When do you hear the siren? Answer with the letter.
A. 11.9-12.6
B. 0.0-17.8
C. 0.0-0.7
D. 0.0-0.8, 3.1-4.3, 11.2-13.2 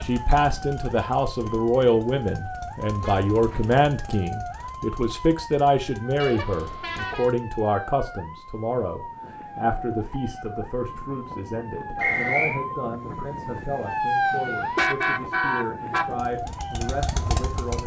B.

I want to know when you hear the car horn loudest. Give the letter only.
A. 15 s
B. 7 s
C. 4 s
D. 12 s
A.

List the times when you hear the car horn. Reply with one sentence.
You can hear the car horn from 3.0 to 3.8 s, from 6.2 to 7.3 s and from 14.2 to 16.2 s.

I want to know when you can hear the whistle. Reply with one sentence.
You can hear the whistle from 11.9 to 12.6 s.